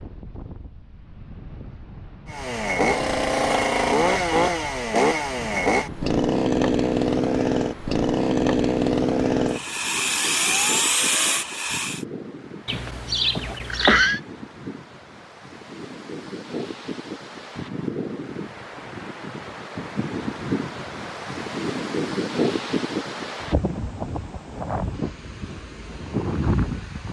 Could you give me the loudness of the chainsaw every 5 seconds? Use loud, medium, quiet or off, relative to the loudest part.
loud, loud, loud, off, off, off.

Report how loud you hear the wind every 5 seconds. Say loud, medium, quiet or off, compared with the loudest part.
quiet, quiet, medium, medium, loud, loud.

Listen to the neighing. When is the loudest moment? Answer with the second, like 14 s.
14 s.